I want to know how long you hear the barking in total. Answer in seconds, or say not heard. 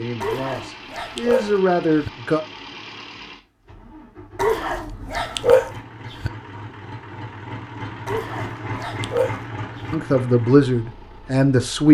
6 s.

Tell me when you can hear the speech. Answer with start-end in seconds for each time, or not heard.
0.0-2.4, 9.9-11.9.